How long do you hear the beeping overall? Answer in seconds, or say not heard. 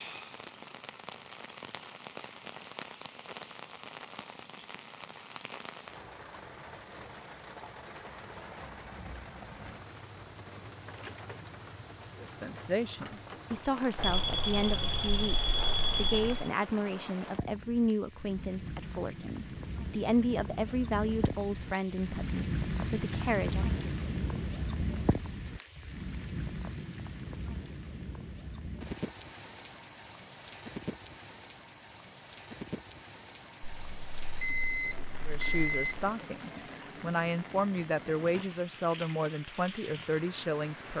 5 s.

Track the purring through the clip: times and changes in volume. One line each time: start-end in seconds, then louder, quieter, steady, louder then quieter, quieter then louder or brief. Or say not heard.
not heard.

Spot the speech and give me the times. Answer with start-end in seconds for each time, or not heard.
12.2-23.8, 35.2-40.9.